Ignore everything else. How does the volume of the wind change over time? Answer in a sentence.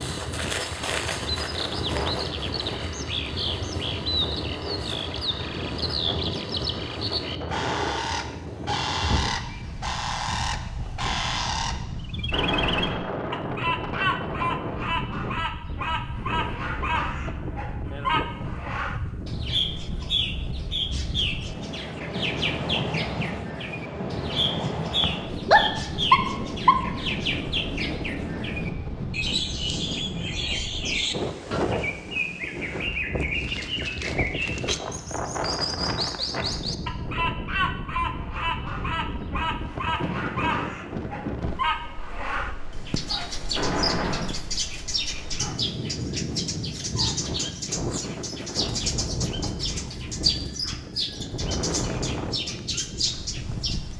The volume of the wind stays about the same.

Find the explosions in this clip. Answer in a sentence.
You can hear the explosions from 12.3 to 13.1 s and from 43.5 to 44.4 s.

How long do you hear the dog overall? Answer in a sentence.
You can hear the dog for 2 seconds altogether.